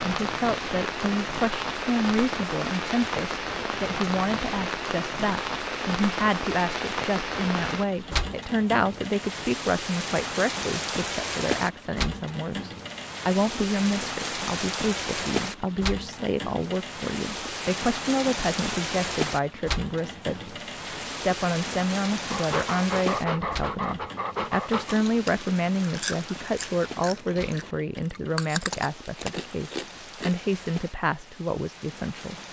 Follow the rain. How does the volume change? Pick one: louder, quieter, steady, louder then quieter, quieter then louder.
quieter.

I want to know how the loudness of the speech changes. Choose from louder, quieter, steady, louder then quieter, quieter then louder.
steady.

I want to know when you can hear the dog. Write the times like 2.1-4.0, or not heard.
22.2-25.0.